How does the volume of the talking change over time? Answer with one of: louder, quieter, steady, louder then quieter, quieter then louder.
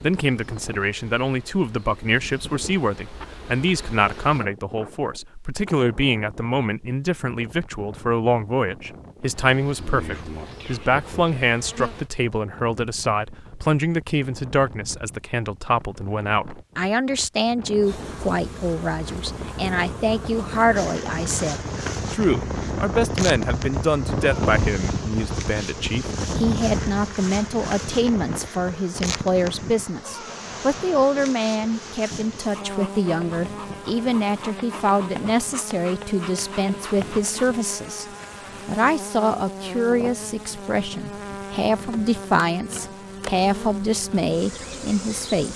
steady.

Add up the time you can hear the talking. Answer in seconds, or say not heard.
45 s.